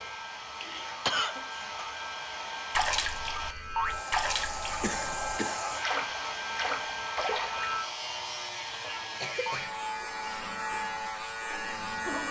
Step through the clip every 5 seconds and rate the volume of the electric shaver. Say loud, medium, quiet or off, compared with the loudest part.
medium, loud, loud.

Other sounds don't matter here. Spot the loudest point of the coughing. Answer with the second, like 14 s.
1 s.